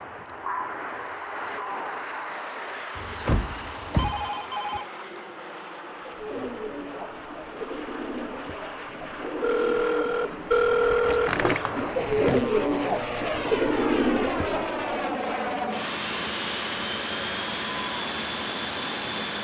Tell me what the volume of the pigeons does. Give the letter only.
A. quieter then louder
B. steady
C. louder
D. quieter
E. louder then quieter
C.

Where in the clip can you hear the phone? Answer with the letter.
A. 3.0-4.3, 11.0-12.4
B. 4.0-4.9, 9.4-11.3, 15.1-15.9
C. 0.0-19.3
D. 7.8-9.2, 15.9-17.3
B.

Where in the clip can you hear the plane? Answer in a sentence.
You can hear the plane from 0.0 to 19.3 s.